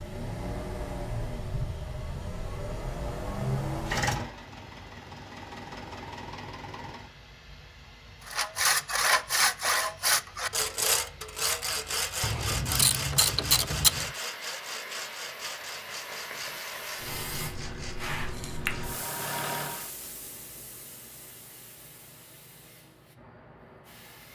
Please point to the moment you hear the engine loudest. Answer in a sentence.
The volume of the engine peaks at 4 seconds.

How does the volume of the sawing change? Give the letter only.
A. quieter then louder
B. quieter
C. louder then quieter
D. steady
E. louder
B.